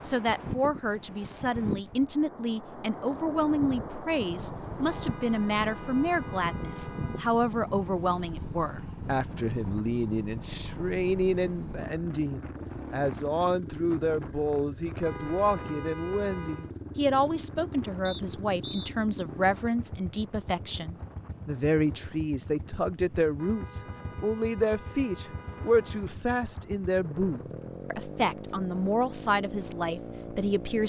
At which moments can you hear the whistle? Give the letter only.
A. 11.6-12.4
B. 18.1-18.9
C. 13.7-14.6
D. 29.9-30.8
B.